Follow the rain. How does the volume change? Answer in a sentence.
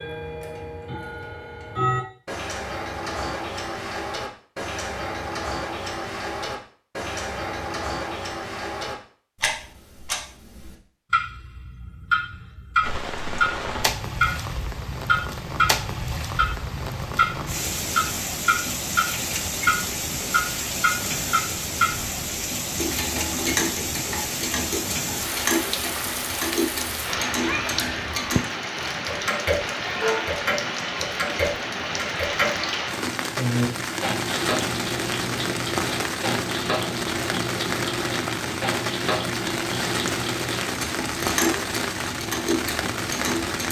The loudness of the rain stays about the same.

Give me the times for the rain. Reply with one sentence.
The rain can be heard from 12.8 to 43.6 s.